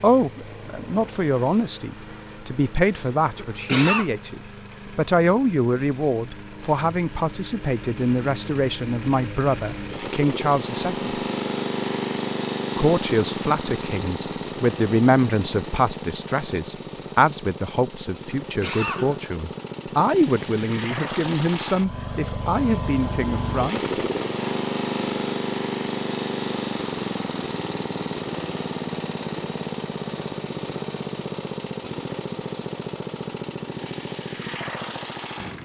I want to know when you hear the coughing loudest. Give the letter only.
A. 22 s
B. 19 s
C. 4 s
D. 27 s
C.